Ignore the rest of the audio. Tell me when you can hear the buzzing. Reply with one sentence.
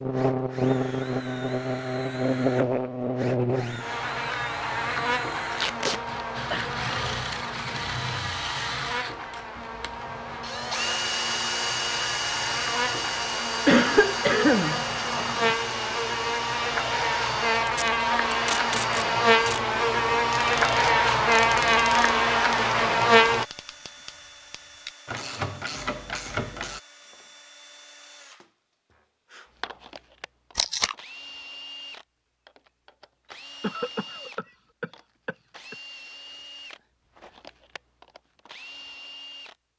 The buzzing can be heard from 0.0 to 23.4 s.